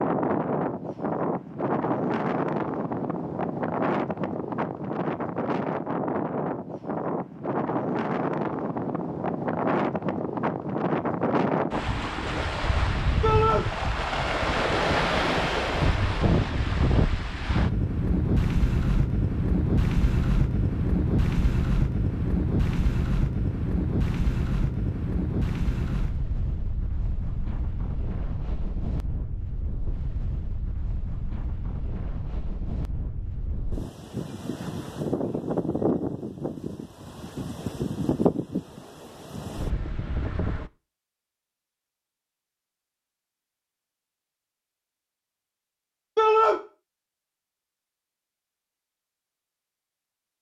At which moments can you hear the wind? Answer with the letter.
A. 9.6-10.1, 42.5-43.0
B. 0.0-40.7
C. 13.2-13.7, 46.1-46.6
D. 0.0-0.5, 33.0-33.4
B.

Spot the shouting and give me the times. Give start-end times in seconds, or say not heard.
13.2-13.7, 46.1-46.6.